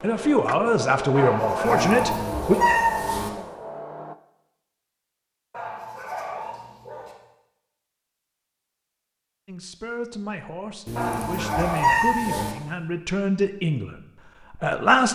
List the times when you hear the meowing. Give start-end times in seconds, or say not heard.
1.6-3.3, 10.8-12.6.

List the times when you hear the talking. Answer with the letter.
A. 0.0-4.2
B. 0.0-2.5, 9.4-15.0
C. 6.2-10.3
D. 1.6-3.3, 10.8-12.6
B.